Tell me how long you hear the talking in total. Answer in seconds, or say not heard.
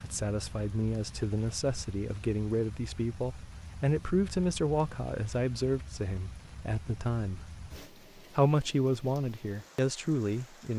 10 s.